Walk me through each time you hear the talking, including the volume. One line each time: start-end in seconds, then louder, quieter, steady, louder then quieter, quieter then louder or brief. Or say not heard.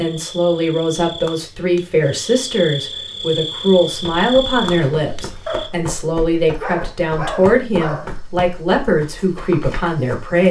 0.0-10.4 steady.